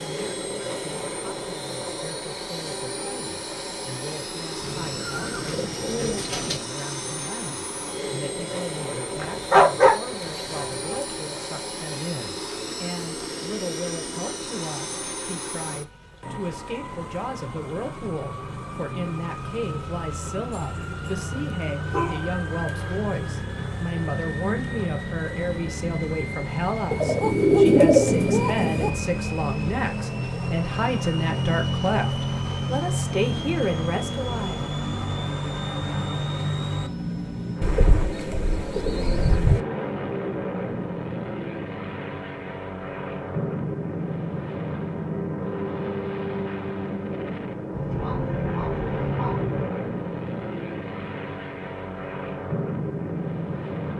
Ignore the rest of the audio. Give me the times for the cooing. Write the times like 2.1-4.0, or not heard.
4.6-6.6, 26.9-28.9, 37.6-39.6.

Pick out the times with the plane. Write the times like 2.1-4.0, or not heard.
0.0-53.9.